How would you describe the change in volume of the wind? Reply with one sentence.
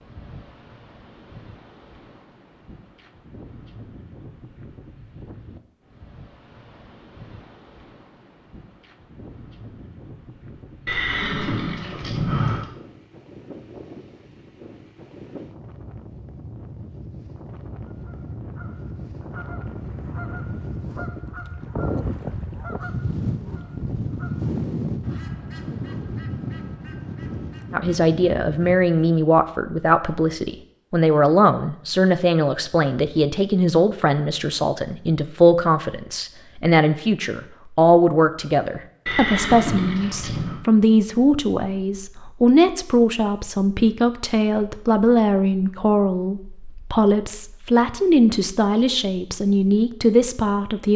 The loudness of the wind goes up.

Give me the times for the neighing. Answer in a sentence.
The neighing can be heard from 10.8 to 12.7 s and from 39.0 to 40.6 s.